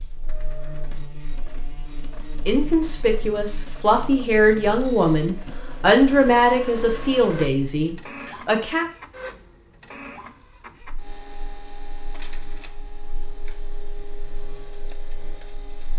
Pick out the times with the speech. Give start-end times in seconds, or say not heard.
2.5-8.8.